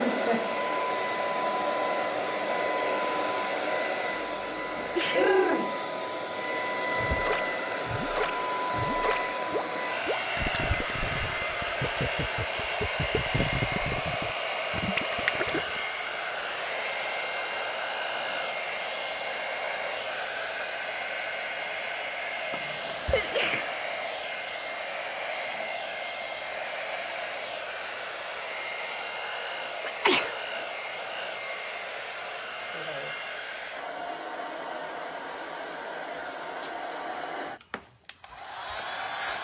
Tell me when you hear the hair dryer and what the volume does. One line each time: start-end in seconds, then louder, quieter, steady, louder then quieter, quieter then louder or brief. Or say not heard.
0.0-39.3 quieter.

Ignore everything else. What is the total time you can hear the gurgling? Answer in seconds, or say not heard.
9 s.